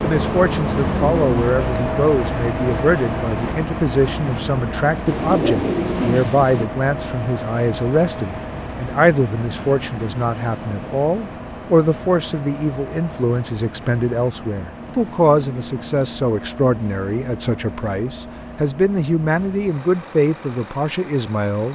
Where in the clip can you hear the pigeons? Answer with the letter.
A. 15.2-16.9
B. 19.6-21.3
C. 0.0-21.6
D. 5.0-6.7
D.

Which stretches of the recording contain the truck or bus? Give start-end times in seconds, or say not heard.
0.0-21.6.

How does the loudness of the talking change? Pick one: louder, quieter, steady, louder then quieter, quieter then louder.
steady.